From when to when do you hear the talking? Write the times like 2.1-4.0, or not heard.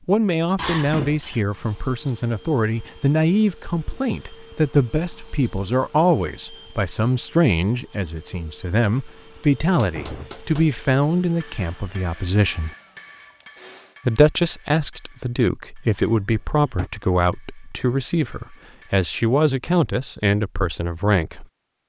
0.1-12.7, 14.1-21.4.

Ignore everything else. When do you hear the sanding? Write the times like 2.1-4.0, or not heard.
not heard.